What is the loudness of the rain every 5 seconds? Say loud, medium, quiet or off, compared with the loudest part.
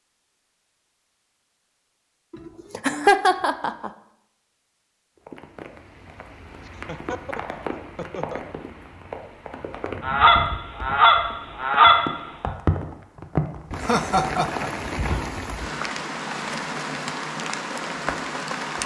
off, medium, loud, loud.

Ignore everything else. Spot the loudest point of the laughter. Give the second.
3 s.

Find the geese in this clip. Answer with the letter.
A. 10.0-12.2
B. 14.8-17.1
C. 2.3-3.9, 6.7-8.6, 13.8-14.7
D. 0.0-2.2
A.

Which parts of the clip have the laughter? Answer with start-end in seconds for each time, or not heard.
2.3-3.9, 6.7-8.6, 13.8-14.7.